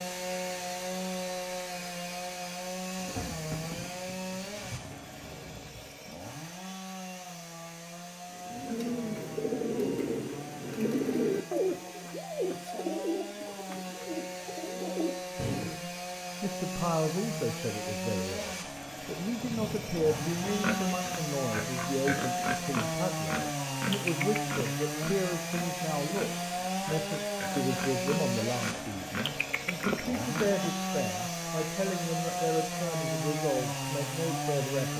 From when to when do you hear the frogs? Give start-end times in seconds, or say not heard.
not heard.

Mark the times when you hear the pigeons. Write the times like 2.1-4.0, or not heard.
8.3-15.8.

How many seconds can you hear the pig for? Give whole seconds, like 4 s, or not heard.
10 s.